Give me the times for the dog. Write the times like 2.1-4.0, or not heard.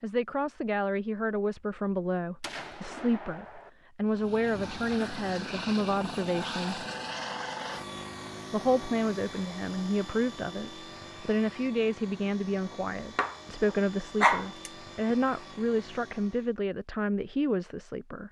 13.2-14.7.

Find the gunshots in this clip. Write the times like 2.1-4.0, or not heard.
2.4-3.7.